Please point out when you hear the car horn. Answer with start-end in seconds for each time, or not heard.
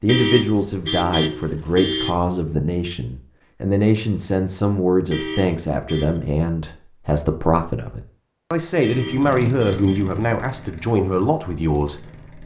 0.1-2.2, 5.1-6.2, 8.8-10.1.